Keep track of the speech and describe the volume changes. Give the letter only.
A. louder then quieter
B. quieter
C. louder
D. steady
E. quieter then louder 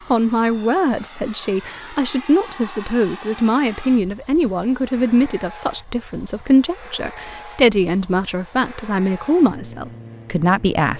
D.